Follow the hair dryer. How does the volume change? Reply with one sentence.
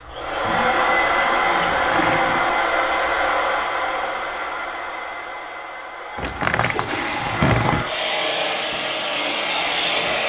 The loudness of the hair dryer goes down, then up.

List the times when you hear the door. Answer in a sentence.
You can hear the door from 1.6 to 2.5 s and from 6.2 to 7.8 s.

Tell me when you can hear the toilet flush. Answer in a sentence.
The toilet flush can be heard from 0.4 to 2.6 s and from 6.7 to 7.5 s.